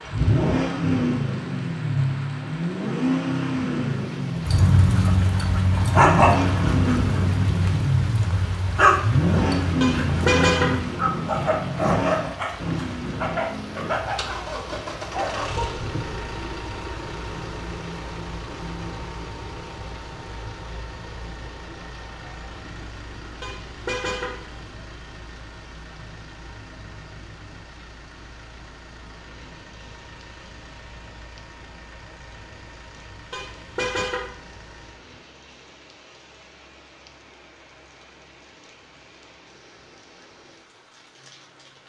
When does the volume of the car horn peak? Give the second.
10 s.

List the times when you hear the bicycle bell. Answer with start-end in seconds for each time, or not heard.
not heard.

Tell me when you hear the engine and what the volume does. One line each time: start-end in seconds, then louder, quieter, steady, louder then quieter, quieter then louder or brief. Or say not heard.
0.0-35.1 quieter.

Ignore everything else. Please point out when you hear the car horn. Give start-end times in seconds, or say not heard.
9.8-10.8, 23.4-24.6, 33.3-34.3.